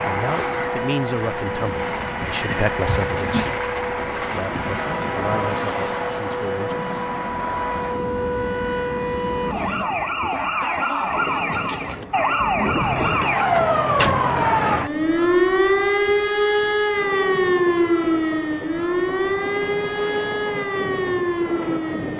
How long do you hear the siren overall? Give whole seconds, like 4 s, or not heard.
22 s.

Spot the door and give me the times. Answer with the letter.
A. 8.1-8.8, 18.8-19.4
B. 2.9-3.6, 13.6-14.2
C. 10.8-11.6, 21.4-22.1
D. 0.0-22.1
B.